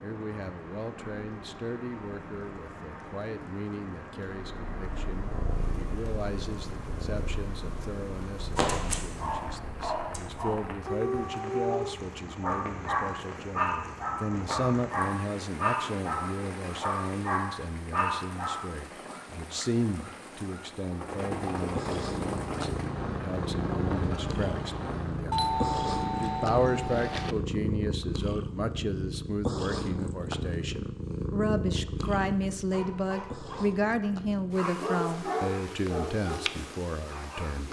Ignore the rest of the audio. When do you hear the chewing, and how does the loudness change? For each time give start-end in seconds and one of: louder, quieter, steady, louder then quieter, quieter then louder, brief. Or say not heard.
not heard.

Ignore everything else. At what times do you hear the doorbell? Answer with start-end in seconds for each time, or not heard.
25.3-27.4.